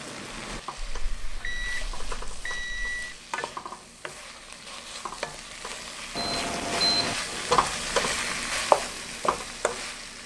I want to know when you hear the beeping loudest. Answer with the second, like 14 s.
7 s.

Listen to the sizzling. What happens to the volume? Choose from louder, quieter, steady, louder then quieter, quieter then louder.
louder.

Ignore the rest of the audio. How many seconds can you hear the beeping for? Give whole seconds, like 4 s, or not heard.
3 s.